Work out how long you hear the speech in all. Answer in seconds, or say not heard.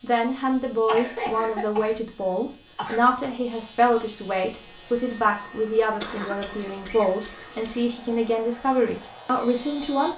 10 s.